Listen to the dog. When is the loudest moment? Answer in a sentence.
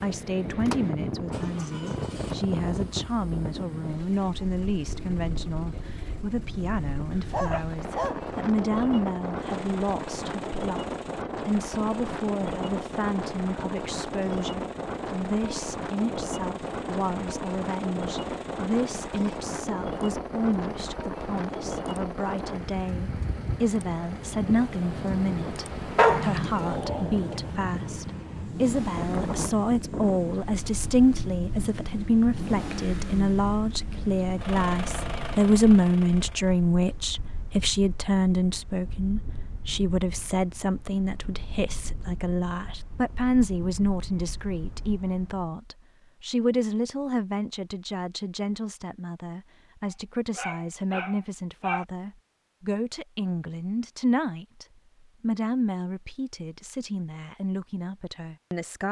The volume of the dog peaks at 26 seconds.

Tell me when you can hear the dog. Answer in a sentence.
The dog can be heard from 7.1 to 8.7 s, from 25.9 to 27.4 s and from 50.4 to 51.9 s.